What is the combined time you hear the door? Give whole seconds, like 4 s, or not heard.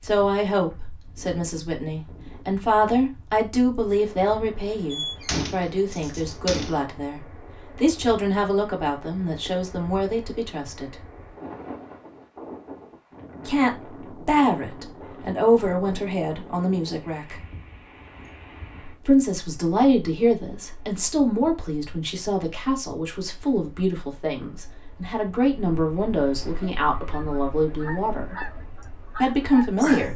3 s.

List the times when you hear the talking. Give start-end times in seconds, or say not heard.
0.0-10.9, 13.4-17.4, 19.1-28.4, 29.2-30.1.